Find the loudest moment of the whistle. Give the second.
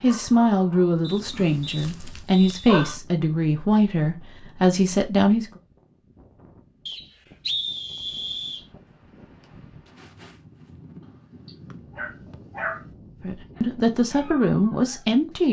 8 s.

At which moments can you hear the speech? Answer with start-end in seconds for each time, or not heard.
0.0-5.5, 13.2-15.4.